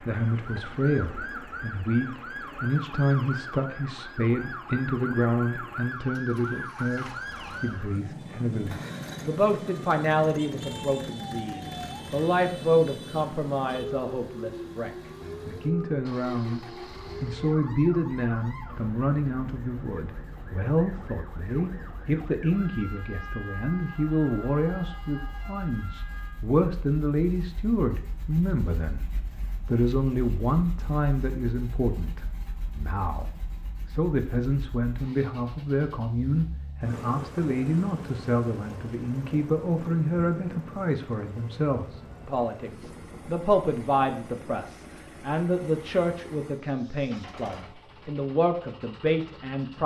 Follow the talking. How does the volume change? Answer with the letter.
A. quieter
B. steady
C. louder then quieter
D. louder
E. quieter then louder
B.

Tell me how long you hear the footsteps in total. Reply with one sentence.
You can't hear the footsteps here.